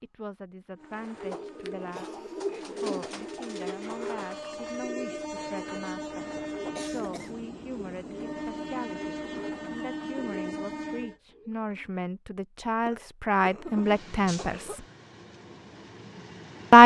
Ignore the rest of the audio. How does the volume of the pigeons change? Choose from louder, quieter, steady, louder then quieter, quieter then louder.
quieter.